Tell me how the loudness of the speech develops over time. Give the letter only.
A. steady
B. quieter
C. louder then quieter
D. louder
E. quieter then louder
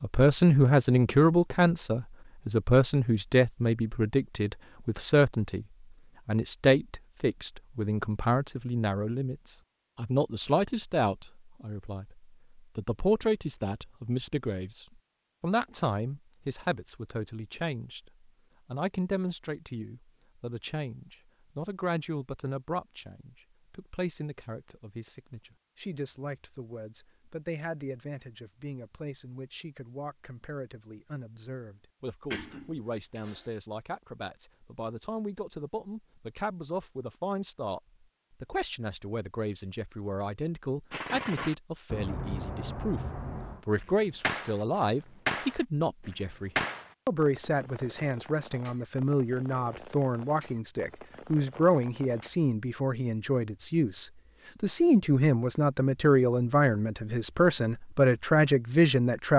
E.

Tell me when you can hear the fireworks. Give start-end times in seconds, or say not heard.
40.9-52.4.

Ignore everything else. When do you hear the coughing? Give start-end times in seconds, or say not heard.
32.3-33.5.